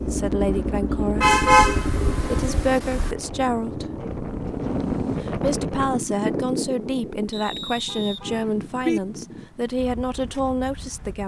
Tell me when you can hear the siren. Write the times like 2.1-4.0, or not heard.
not heard.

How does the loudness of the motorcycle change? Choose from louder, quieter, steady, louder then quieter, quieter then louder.
quieter.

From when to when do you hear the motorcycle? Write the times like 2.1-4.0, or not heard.
0.0-5.2.